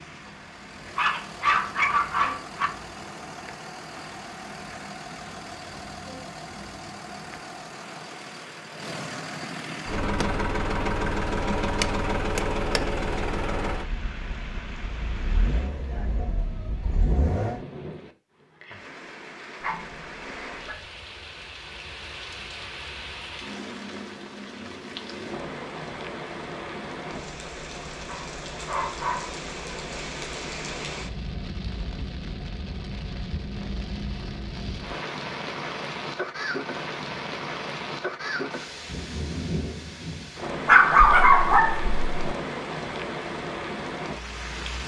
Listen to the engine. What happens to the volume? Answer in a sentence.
The loudness of the engine goes up, then down.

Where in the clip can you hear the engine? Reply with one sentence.
The engine can be heard from 0.0 to 17.6 s.